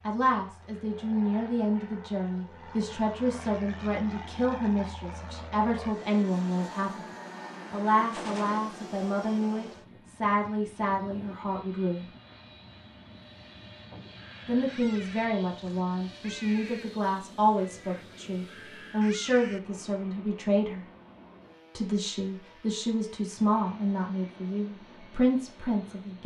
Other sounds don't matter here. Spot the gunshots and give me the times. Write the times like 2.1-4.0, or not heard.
8.1-8.6.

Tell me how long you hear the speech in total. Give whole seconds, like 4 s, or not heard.
22 s.